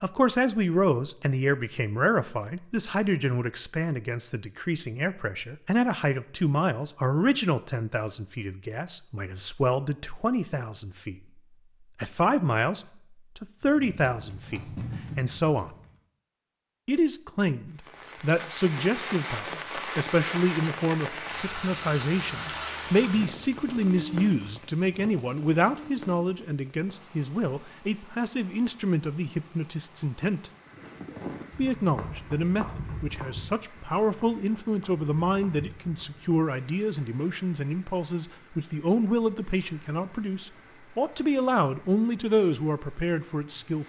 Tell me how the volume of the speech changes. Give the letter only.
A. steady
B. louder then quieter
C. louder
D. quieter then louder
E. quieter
A.